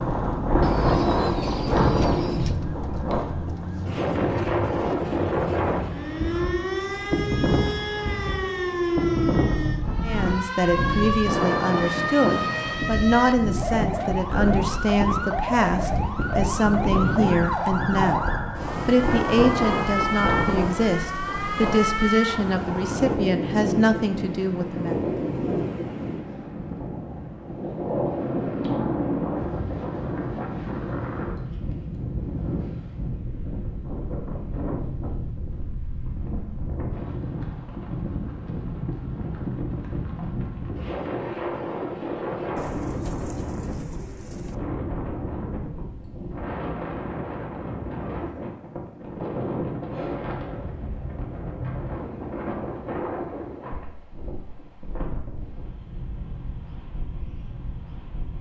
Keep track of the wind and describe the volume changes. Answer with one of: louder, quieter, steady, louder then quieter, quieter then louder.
quieter.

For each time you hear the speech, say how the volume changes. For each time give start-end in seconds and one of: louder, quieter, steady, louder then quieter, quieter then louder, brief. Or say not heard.
10.0-24.9 steady.